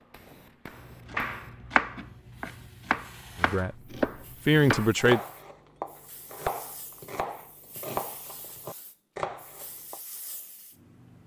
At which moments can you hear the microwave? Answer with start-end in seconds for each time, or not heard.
not heard.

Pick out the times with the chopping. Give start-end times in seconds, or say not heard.
0.7-10.0.